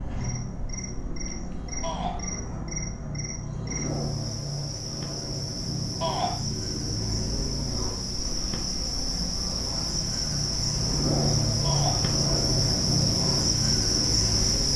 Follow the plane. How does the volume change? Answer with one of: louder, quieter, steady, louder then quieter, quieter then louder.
louder.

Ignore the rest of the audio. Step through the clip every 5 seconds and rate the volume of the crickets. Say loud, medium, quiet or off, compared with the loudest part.
quiet, medium, loud.